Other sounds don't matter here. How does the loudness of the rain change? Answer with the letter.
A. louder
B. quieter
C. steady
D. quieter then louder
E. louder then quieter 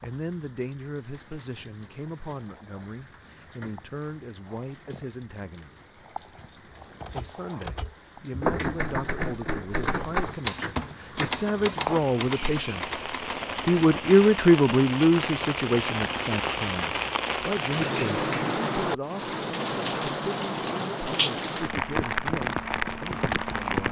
A.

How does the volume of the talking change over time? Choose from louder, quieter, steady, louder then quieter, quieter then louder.
louder then quieter.